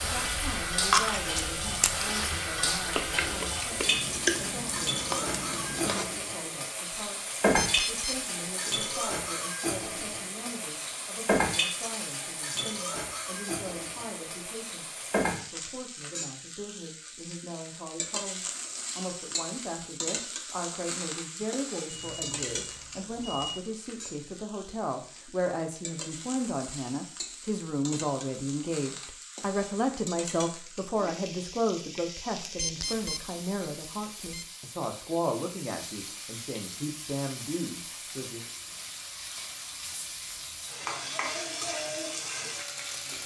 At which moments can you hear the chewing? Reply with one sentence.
The chewing can be heard from 0.1 to 6.1 s.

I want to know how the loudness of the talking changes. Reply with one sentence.
The loudness of the talking goes up.